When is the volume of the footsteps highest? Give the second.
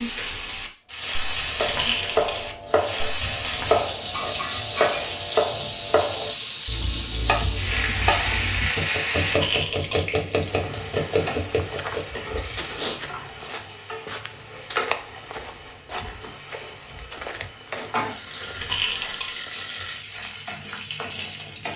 13 s.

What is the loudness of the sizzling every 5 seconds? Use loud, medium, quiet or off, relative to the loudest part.
loud, loud, medium, medium, medium.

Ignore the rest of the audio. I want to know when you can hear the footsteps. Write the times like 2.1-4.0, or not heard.
11.5-19.2.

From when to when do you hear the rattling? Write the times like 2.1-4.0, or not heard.
1.6-2.4, 9.3-10.1, 18.6-19.4.